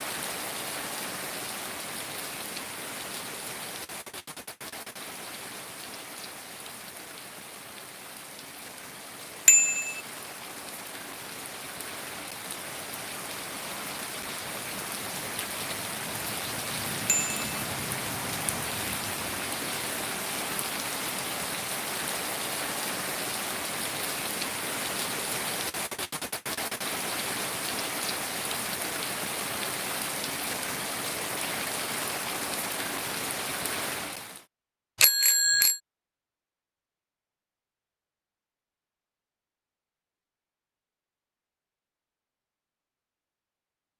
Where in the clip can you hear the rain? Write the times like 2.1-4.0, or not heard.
0.0-34.5.